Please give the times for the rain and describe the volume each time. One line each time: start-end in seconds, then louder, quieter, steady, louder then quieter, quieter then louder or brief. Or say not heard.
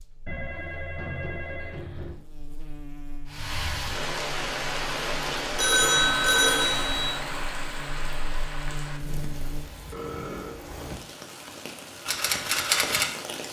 3.3-13.4 quieter then louder.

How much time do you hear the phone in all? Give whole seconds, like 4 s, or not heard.
4 s.